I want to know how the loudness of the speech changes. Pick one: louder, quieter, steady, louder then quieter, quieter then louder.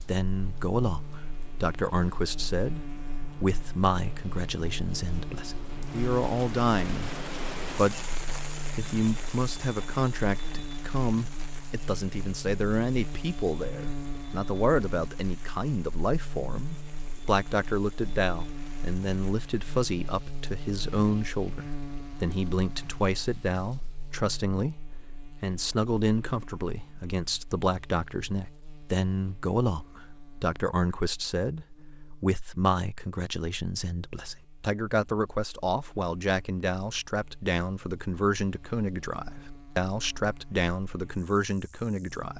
steady.